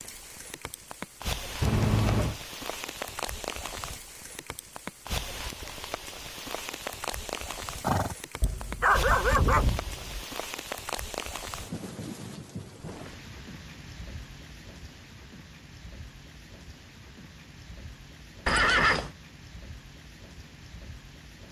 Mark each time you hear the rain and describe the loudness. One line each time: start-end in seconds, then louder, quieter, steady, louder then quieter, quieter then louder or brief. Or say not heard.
0.0-21.4 quieter.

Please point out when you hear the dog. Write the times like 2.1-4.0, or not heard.
8.4-10.2.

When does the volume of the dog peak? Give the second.
9 s.